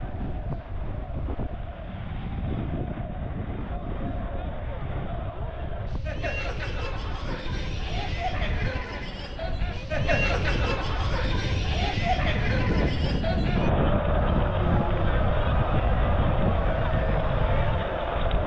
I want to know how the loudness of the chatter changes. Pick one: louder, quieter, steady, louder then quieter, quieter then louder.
louder.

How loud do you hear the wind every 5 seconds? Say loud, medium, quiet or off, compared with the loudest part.
medium, medium, loud, loud.